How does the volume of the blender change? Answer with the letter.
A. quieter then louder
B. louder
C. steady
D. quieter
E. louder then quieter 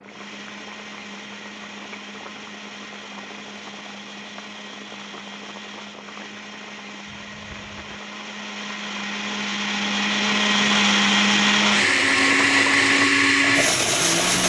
B.